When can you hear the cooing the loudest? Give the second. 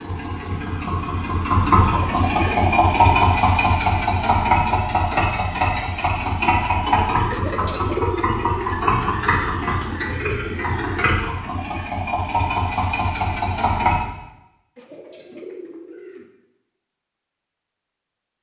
8 s.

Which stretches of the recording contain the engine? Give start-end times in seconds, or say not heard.
0.0-14.1.